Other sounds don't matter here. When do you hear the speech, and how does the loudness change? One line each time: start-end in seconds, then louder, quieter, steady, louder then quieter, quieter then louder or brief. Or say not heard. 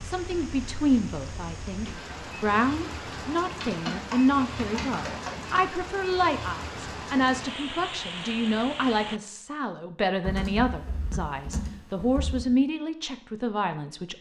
0.0-14.1 steady.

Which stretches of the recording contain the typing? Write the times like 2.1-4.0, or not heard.
3.6-5.4, 10.2-12.4.